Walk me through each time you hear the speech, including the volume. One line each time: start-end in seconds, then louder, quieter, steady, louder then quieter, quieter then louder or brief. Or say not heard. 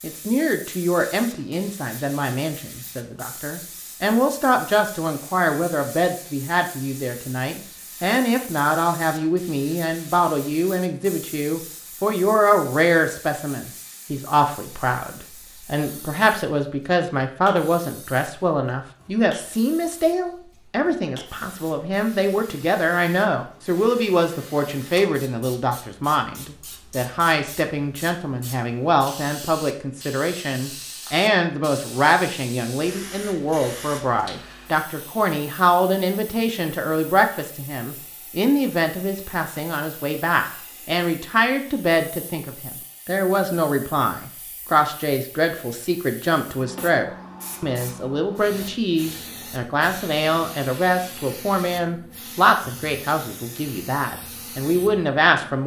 0.0-55.6 steady.